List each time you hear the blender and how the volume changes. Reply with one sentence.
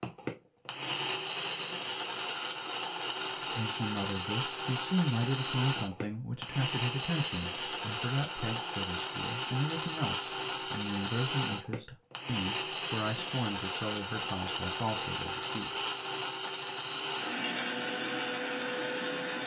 You can hear the blender from 0.0 to 19.4 s, at a steady volume.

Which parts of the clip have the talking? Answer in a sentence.
You can hear the talking from 3.5 to 15.7 s.